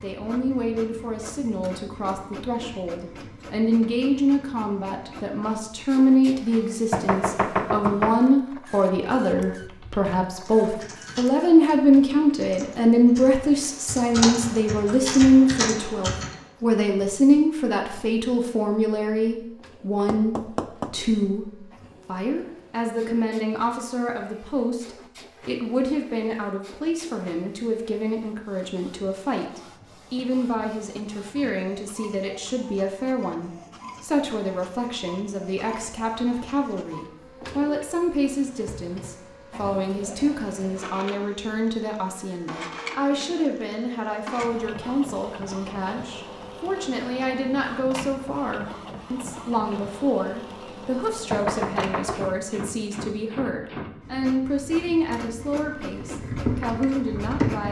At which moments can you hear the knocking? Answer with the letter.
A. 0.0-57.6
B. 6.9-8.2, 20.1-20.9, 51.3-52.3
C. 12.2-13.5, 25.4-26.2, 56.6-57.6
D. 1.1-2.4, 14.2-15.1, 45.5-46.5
B.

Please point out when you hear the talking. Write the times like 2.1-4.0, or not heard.
0.0-57.6.